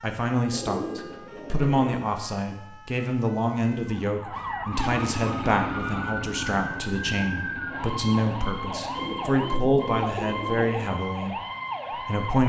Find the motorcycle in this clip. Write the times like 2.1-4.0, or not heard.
4.7-9.3.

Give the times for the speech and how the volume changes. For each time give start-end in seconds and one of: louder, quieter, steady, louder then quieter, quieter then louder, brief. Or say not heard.
0.0-12.4 steady.